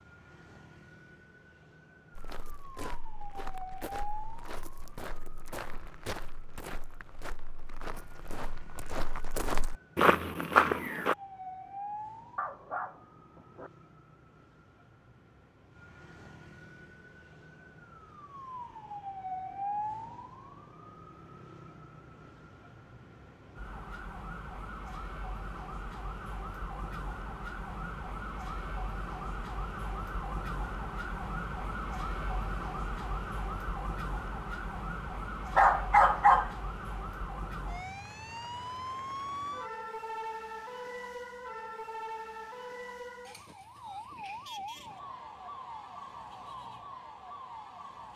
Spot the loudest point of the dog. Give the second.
36 s.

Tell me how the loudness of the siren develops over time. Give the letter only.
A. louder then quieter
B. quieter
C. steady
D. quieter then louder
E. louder
E.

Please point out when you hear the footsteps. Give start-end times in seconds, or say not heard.
2.1-11.2.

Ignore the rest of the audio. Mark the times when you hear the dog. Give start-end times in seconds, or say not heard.
12.3-13.7, 35.5-36.5.